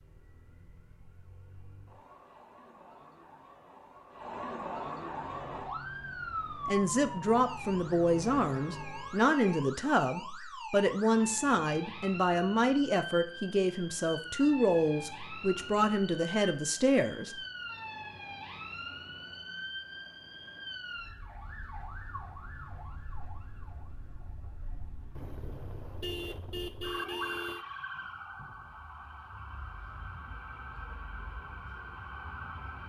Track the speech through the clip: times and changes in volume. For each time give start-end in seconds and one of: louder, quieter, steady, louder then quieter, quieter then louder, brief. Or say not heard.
6.7-17.4 steady.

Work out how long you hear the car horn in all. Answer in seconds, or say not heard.
4 s.